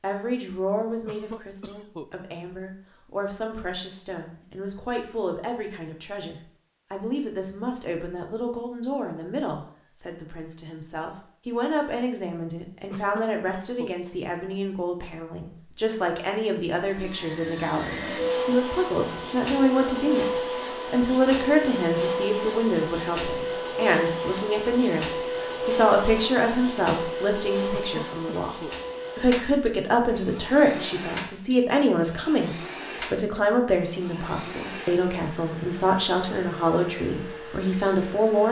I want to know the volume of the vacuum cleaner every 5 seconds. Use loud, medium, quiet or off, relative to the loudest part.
off, off, off, loud, loud, loud, medium, medium.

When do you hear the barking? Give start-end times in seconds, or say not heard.
not heard.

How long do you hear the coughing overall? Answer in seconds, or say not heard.
3 s.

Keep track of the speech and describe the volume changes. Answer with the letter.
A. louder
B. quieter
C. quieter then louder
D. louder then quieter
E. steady
A.